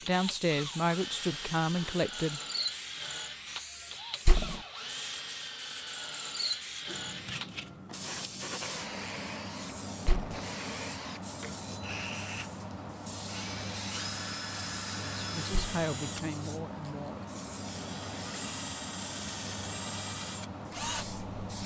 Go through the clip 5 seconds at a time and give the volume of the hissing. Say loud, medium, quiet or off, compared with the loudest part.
medium, loud, loud, loud, loud.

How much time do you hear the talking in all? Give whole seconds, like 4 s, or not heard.
5 s.